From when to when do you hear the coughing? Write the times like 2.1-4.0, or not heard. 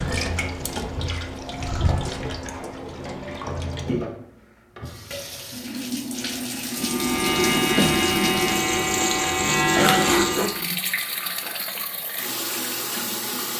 9.8-10.6.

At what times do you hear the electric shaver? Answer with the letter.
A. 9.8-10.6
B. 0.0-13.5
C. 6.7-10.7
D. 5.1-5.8
C.